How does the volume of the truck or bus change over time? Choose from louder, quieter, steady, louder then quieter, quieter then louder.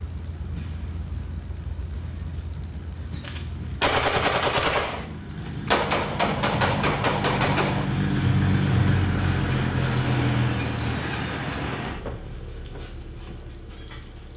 louder then quieter.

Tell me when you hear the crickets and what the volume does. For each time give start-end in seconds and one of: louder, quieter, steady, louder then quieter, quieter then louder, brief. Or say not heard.
0.0-14.3 quieter then louder.